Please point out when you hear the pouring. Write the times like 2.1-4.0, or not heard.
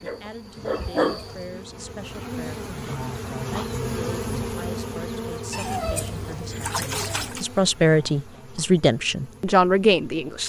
0.7-1.4, 5.5-7.5.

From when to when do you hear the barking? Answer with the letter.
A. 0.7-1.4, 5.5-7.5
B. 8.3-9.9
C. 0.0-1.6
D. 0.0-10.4
C.